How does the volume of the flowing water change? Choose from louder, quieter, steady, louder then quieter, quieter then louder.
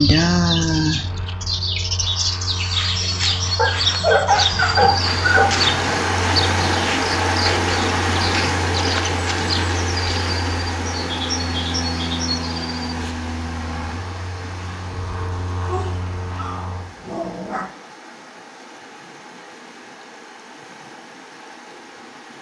quieter.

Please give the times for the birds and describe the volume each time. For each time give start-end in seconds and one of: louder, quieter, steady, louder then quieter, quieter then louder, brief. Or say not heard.
0.0-12.9 quieter.